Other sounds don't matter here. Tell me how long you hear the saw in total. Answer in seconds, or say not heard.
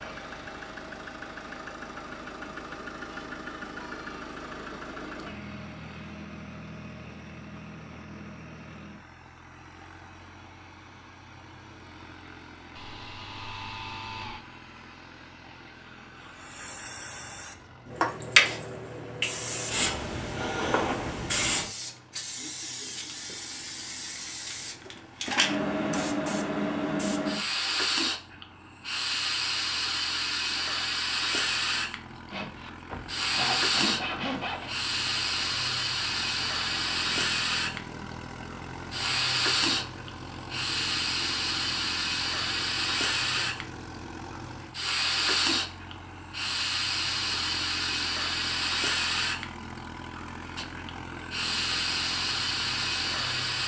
4 s.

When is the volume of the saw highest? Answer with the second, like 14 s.
34 s.